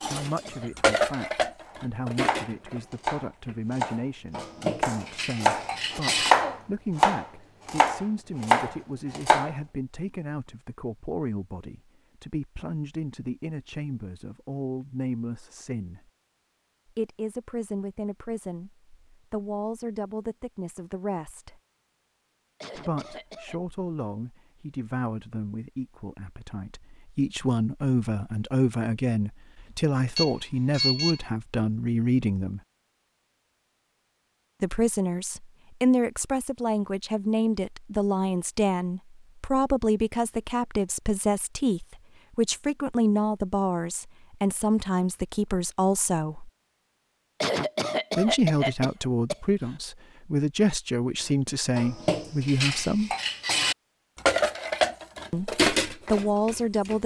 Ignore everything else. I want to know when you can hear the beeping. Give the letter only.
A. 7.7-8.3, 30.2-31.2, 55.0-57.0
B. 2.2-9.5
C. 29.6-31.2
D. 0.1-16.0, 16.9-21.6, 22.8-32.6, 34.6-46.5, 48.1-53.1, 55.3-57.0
C.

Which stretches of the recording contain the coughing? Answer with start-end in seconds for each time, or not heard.
0.1-0.7, 22.6-23.6, 47.4-49.4.